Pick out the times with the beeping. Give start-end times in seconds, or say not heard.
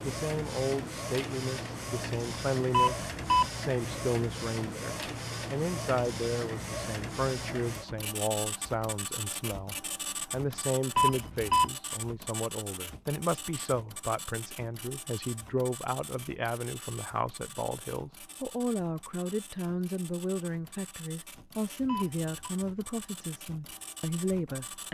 2.7-3.5, 10.9-11.7, 21.9-22.5.